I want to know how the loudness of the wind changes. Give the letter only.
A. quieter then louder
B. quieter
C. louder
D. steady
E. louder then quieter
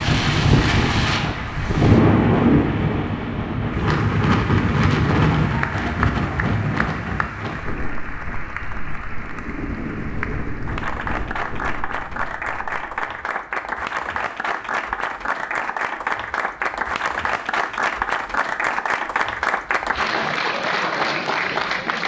B.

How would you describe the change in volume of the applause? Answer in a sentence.
The loudness of the applause goes up.